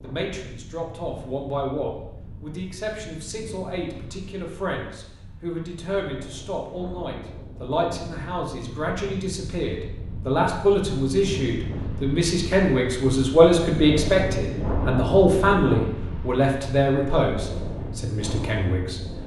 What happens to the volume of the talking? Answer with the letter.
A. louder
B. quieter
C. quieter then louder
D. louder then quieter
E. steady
A.